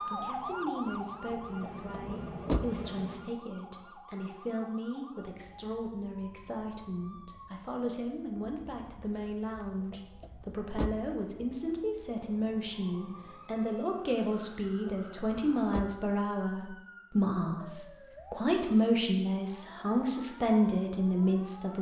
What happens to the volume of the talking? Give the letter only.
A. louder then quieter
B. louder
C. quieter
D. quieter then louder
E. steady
B.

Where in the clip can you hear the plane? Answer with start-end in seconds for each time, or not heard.
0.0-3.3.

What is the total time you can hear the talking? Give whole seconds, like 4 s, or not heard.
22 s.